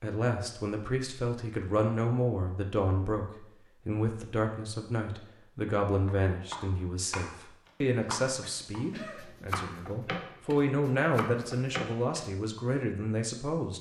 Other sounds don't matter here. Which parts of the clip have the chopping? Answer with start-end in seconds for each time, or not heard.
6.0-12.3.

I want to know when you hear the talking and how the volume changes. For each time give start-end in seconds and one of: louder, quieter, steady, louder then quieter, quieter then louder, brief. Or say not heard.
0.0-13.7 steady.